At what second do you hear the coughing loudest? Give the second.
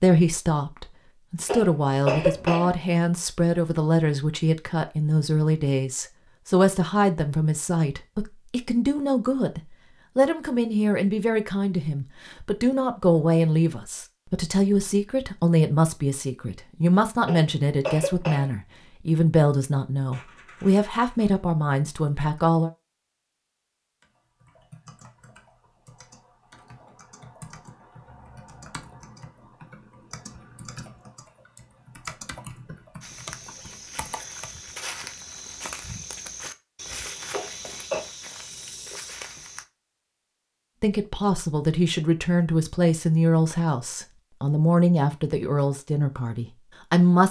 2 s.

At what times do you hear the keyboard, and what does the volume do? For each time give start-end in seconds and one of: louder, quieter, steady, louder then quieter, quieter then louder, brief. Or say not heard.
24.0-34.5 louder.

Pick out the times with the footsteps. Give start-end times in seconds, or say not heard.
33.0-39.6.